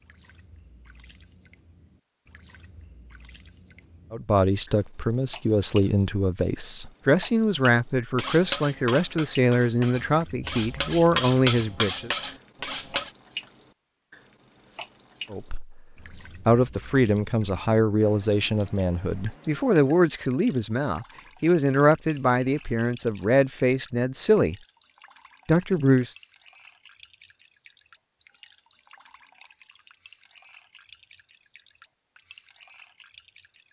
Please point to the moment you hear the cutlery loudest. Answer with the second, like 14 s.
11 s.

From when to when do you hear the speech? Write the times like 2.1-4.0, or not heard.
4.1-12.1, 15.3-24.6, 25.4-26.1.